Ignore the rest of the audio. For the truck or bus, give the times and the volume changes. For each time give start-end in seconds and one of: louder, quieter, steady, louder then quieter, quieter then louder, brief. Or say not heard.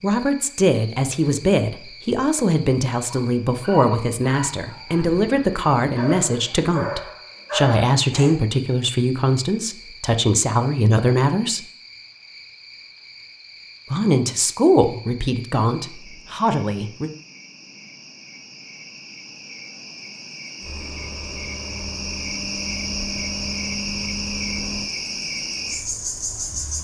20.6-26.7 louder then quieter.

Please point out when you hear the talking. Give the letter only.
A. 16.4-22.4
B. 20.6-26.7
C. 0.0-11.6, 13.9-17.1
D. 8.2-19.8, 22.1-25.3
C.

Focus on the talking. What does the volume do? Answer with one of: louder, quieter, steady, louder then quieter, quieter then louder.
steady.